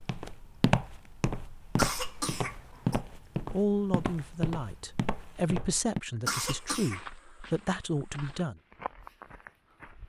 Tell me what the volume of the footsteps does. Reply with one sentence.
The volume of the footsteps goes down.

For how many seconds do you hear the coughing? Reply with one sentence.
You can hear the coughing for 2 seconds altogether.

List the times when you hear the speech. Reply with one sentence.
The speech can be heard from 3.5 to 8.6 s.